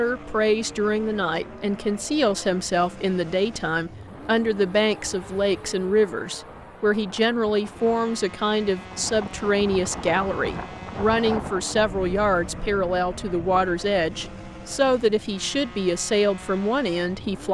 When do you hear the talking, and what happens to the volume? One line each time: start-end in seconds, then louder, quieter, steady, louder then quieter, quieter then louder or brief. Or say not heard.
0.0-17.4 steady.